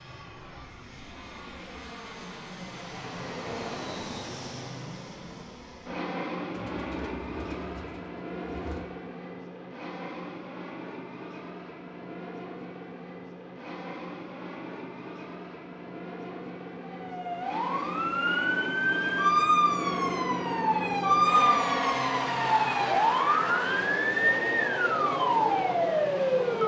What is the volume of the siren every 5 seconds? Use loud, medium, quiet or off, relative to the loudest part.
off, off, off, loud, loud, loud.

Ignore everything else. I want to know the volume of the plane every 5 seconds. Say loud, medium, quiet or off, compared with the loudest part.
medium, medium, medium, medium, loud, loud.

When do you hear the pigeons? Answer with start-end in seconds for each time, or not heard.
6.5-8.8.